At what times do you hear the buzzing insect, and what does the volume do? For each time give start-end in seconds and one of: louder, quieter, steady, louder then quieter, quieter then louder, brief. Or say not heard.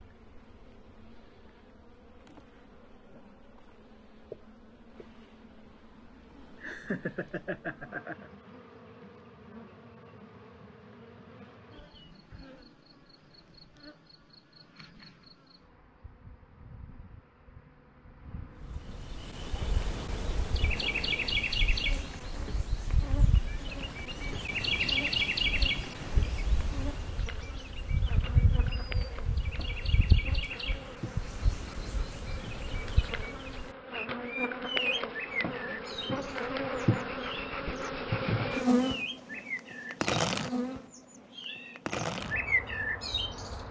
0.0-43.6 louder.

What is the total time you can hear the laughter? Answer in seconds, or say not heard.
2 s.